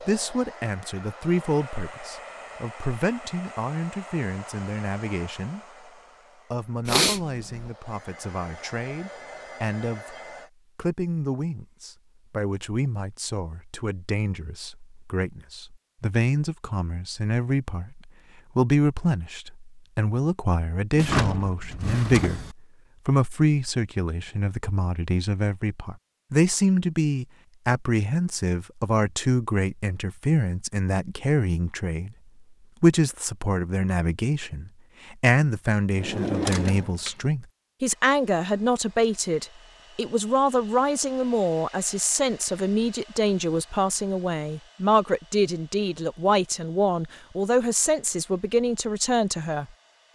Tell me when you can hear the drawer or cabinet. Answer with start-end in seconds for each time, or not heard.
20.9-22.6, 36.0-37.2.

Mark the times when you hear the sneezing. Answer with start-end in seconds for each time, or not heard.
6.8-7.7.